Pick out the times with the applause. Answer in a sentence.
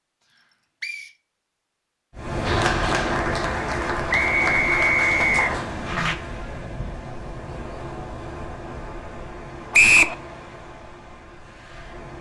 The applause can be heard from 2.5 to 6.2 s.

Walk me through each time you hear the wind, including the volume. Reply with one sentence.
You can hear the wind from 2.1 to 12.1 s, getting quieter.